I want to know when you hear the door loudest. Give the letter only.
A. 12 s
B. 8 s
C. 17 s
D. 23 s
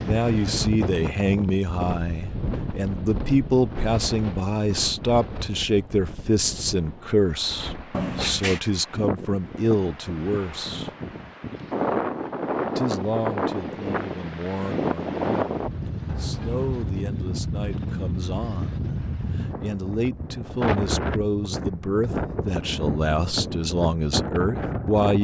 B.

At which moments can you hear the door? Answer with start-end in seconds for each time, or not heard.
7.9-8.6, 16.1-16.9.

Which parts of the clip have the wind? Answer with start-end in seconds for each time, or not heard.
0.0-25.2.